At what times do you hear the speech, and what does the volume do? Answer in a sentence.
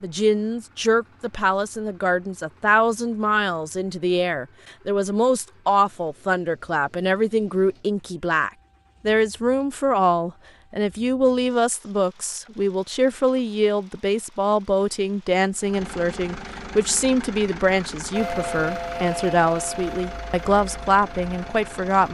You can hear the speech from 0.0 to 22.0 s, at a steady volume.